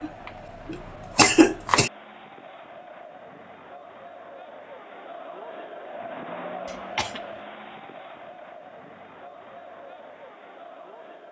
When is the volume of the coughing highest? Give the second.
1 s.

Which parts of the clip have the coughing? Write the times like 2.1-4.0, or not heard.
0.0-1.9, 6.7-7.2.